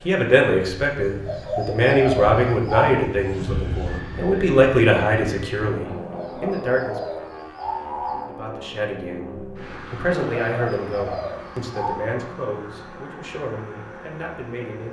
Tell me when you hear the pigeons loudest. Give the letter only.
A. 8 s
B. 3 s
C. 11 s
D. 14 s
B.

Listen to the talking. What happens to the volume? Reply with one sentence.
The volume of the talking goes down.